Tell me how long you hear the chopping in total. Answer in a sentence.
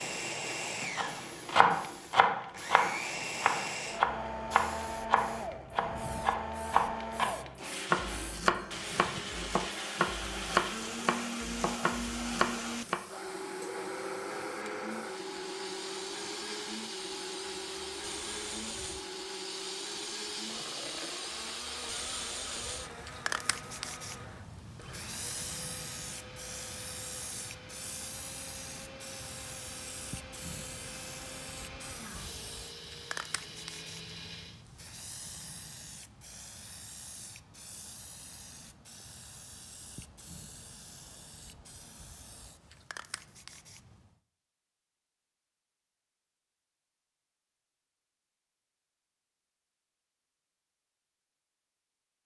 The chopping can be heard for 12 seconds in total.